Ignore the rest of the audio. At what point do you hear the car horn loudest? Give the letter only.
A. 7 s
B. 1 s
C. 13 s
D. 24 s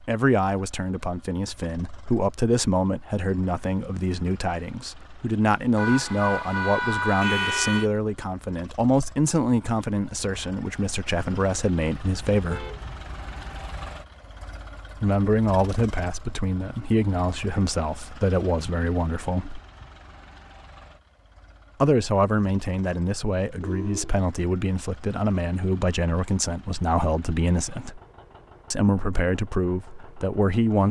A.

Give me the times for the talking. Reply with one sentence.
The talking can be heard from 0.0 to 12.7 s, from 15.0 to 19.6 s, from 21.8 to 28.0 s and from 28.7 to 30.8 s.